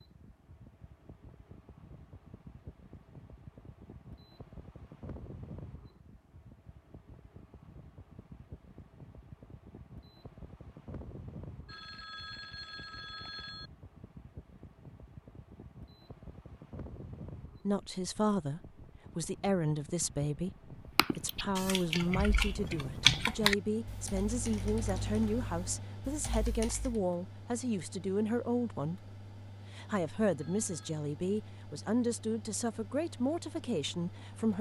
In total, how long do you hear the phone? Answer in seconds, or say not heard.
3 s.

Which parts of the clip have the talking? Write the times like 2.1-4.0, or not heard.
17.6-29.1, 29.8-34.5.